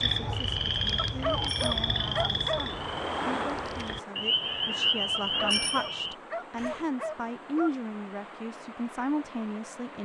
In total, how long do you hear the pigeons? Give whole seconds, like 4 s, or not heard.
not heard.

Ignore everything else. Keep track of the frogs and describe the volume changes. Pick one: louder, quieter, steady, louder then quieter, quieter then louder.
quieter then louder.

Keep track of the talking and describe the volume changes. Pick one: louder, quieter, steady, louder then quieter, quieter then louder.
louder.